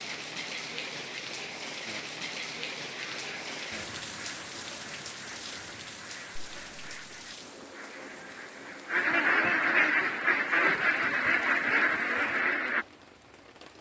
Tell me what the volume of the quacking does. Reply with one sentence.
The loudness of the quacking goes up.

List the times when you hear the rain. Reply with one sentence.
The rain can be heard from 0.0 to 13.7 s.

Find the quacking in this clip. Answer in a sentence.
The quacking can be heard from 2.9 to 12.8 s.